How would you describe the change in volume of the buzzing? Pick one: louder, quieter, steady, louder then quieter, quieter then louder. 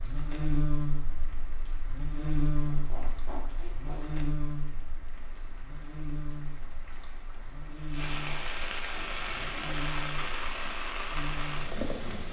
quieter.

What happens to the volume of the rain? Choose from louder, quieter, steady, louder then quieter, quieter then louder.
louder.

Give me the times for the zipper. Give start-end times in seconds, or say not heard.
2.6-4.2, 8.9-9.9.